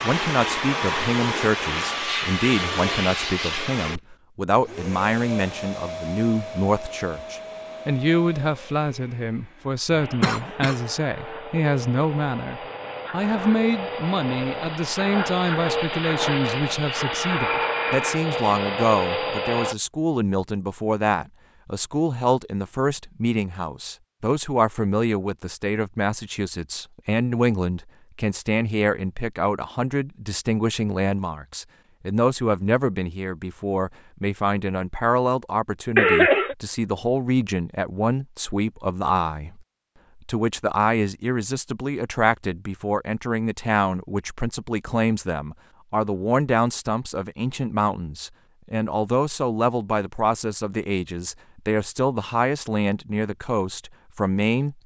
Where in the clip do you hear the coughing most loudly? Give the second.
36 s.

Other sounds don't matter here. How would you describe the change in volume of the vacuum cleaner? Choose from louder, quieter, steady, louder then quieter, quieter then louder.
quieter then louder.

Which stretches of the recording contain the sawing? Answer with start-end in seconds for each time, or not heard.
not heard.